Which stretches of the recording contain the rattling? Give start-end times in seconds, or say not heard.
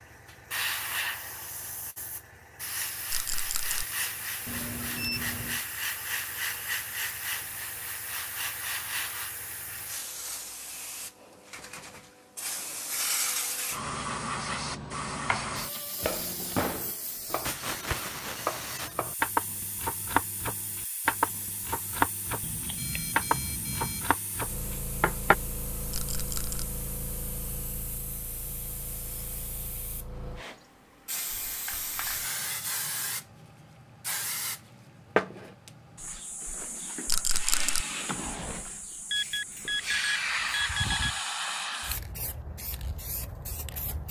3.1-3.9, 25.9-26.6, 37.0-37.9.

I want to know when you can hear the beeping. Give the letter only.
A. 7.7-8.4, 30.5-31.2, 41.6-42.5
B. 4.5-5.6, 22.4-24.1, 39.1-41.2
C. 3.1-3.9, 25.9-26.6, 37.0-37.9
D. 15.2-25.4
B.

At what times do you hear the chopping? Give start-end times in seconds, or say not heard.
15.2-25.4.